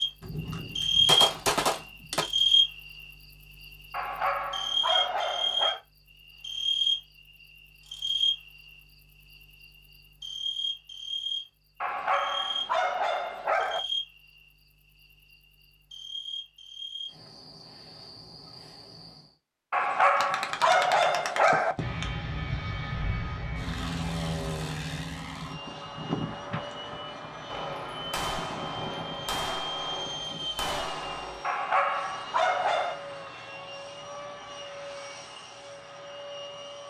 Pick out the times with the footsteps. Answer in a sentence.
You can't hear the footsteps here.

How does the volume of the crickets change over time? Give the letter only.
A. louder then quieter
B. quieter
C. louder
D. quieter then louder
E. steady
B.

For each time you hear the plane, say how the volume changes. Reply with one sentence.
The plane can be heard from 21.8 to 36.8 s, getting quieter.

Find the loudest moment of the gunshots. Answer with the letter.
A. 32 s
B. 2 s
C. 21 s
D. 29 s
B.